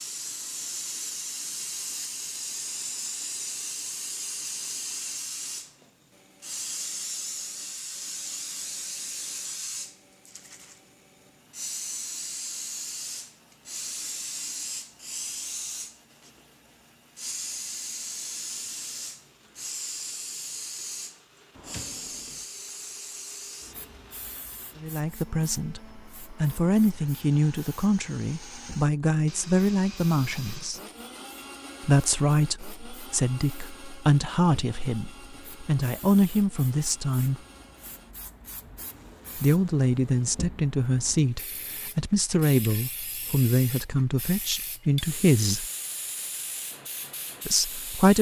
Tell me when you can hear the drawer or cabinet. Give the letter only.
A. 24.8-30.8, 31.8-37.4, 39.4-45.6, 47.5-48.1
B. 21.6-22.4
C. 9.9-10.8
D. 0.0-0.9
B.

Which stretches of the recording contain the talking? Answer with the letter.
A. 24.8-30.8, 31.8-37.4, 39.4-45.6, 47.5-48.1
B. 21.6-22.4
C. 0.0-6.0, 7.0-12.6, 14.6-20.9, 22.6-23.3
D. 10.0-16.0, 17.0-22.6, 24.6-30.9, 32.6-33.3
A.